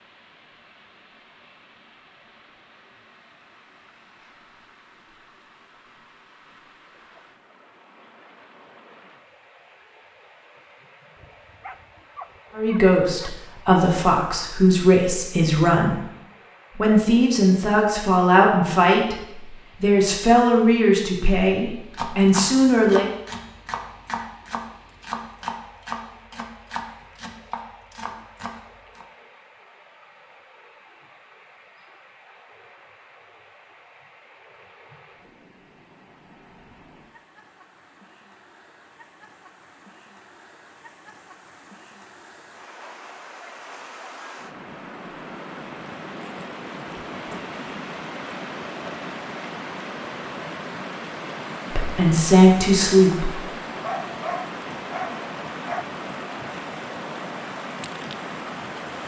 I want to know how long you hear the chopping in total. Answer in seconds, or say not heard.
7 s.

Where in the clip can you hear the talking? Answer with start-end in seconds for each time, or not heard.
12.6-16.0, 16.8-23.1, 51.7-53.4.